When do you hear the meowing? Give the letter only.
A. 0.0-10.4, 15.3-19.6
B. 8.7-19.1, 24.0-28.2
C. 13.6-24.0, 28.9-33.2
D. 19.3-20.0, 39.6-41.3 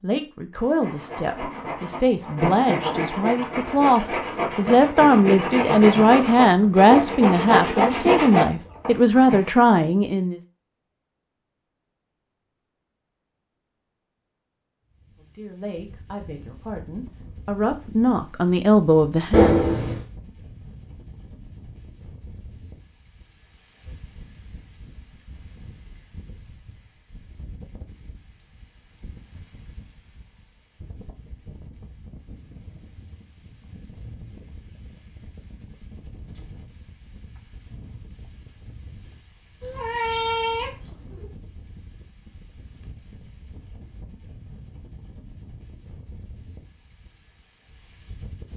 D.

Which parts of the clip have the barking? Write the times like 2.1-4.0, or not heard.
not heard.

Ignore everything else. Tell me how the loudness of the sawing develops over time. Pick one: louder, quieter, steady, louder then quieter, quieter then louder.
louder.